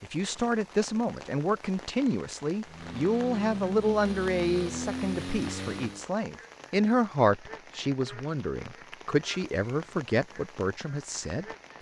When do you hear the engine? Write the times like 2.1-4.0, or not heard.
2.6-6.0.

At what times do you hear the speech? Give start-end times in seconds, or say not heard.
0.0-11.4.